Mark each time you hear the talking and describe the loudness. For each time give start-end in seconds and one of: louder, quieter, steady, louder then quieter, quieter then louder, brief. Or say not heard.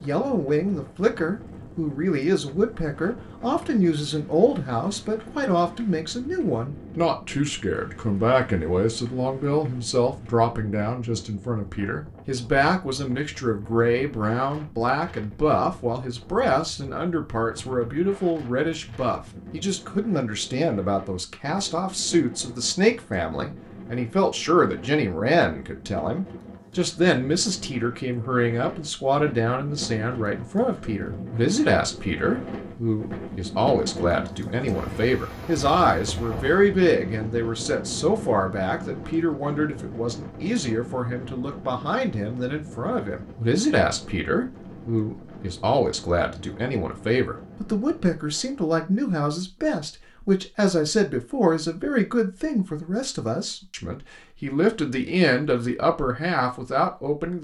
0.0-57.3 steady.